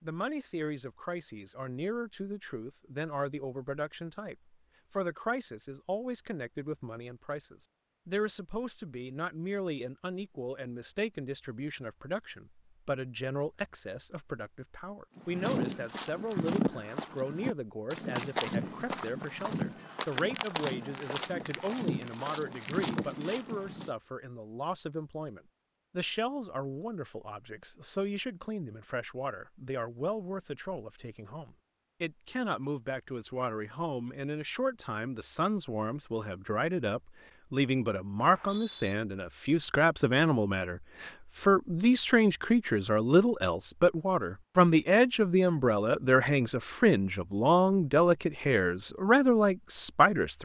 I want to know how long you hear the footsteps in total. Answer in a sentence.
The footsteps can be heard for 9 seconds in total.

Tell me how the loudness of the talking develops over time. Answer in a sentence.
The volume of the talking goes up.